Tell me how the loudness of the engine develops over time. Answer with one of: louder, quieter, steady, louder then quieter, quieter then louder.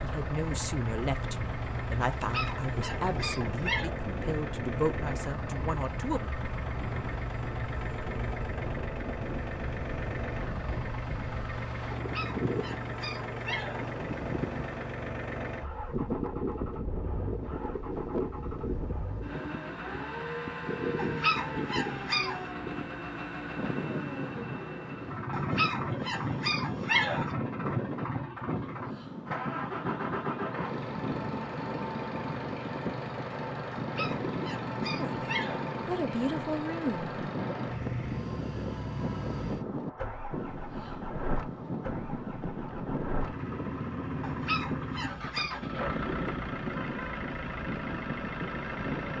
steady.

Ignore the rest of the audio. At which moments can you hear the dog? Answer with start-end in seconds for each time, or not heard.
2.1-4.0, 11.9-13.9, 20.9-22.4, 25.3-27.3, 33.8-35.7, 44.2-45.6.